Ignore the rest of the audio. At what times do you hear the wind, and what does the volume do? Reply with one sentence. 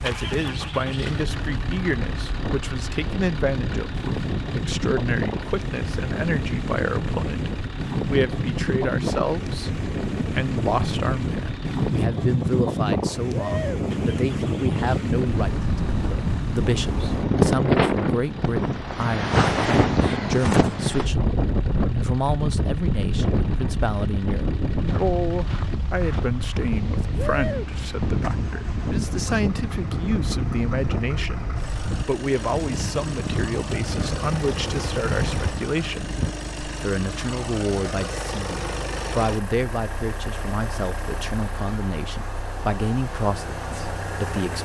You can hear the wind from 0.0 to 36.4 s, getting louder then quieter.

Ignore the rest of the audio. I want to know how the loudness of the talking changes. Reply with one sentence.
The volume of the talking stays about the same.